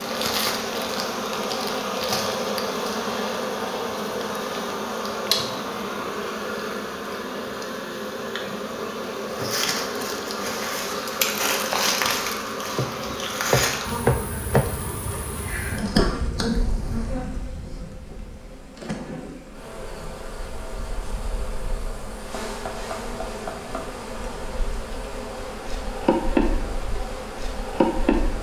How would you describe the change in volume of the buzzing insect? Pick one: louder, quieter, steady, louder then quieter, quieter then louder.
quieter then louder.